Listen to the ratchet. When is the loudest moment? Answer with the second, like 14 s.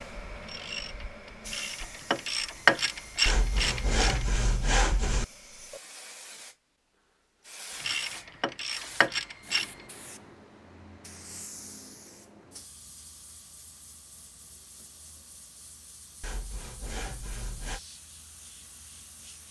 3 s.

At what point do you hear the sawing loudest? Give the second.
5 s.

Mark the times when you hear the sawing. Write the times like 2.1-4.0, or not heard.
3.2-5.2, 16.2-17.8.